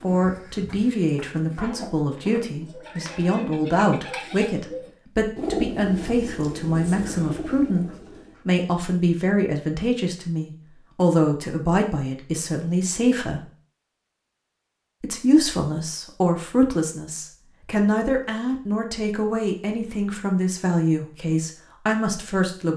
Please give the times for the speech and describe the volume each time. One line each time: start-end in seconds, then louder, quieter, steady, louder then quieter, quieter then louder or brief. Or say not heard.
0.0-13.4 steady
15.0-22.7 steady.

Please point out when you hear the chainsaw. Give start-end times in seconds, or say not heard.
not heard.